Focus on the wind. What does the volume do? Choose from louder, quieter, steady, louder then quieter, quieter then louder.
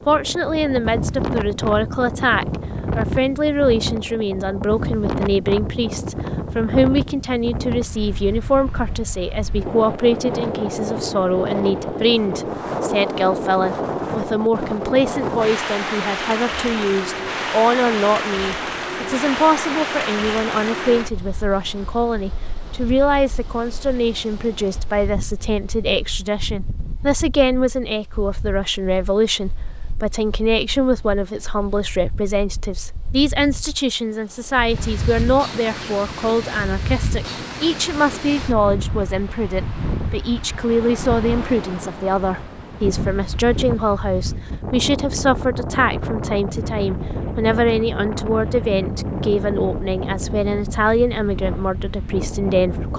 quieter then louder.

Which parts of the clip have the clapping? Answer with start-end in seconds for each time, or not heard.
not heard.